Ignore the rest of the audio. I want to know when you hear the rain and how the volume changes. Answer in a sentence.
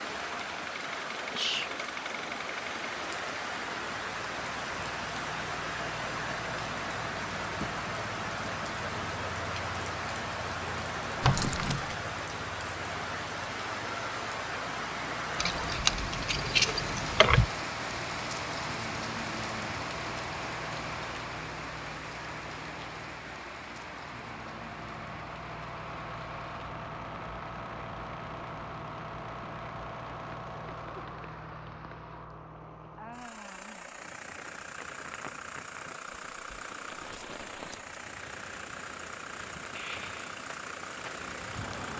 The rain can be heard from 0.0 to 41.9 s, getting quieter.